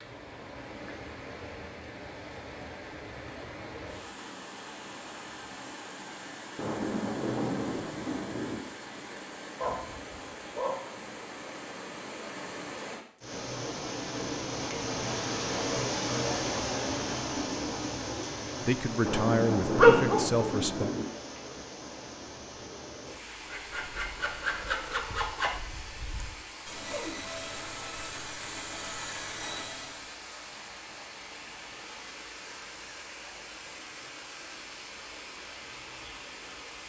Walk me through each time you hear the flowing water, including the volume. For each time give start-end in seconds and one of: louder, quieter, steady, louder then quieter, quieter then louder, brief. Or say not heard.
0.0-36.8 louder then quieter.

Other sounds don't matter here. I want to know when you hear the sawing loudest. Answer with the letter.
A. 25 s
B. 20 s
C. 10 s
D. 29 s
A.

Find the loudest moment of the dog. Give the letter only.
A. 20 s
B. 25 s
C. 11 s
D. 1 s
A.